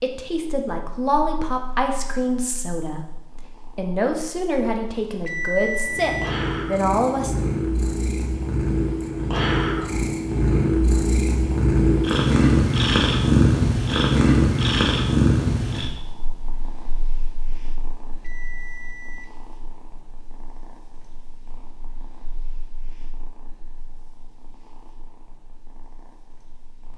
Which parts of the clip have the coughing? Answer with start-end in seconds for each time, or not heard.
not heard.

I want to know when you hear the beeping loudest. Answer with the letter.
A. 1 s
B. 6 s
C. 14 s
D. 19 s
B.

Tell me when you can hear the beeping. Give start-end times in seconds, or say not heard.
5.0-6.3, 18.1-19.3.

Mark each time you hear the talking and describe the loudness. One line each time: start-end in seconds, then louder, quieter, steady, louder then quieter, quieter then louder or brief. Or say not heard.
0.0-7.3 steady.